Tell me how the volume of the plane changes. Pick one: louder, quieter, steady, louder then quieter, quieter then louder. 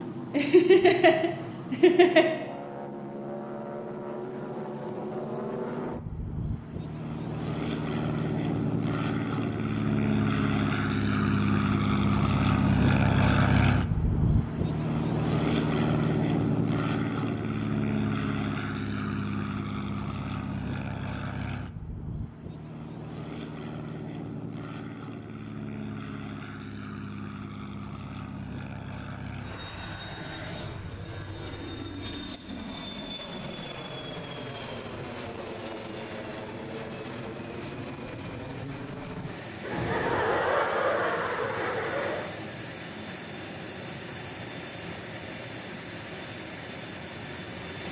louder then quieter.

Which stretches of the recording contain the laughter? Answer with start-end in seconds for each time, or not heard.
0.3-2.3, 39.6-42.3.